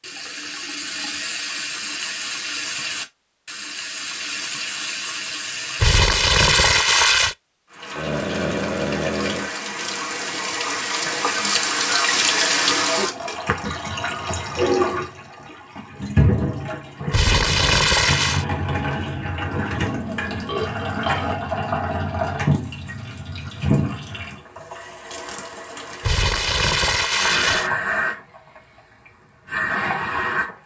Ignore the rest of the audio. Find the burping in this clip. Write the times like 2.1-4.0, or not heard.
8.0-9.5, 19.4-21.4.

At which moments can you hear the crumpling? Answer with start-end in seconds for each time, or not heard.
5.8-7.3, 17.1-18.4, 26.0-27.7.